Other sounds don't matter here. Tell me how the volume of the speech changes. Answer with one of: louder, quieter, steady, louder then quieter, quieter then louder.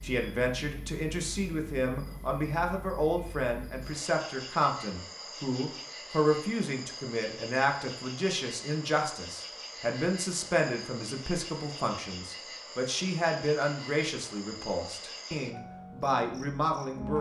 steady.